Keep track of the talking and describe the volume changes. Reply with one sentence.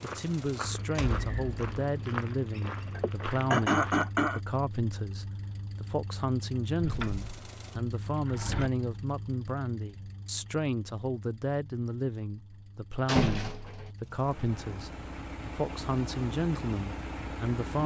The volume of the talking stays about the same.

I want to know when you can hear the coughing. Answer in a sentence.
The coughing can be heard from 3.0 to 4.4 s.